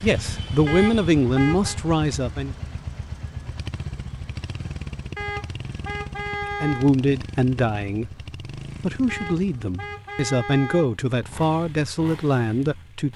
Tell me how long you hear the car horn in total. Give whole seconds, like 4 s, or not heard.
5 s.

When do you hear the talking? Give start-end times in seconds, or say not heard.
0.0-2.5, 6.6-8.1, 8.8-13.1.